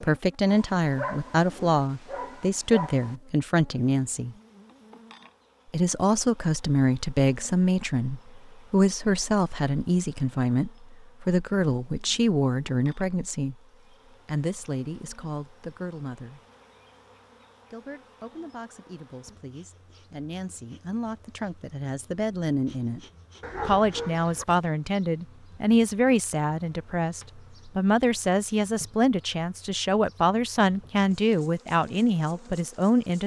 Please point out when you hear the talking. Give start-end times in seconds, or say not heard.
0.0-4.3, 5.7-13.6, 14.2-16.4, 17.7-23.0, 23.6-33.2.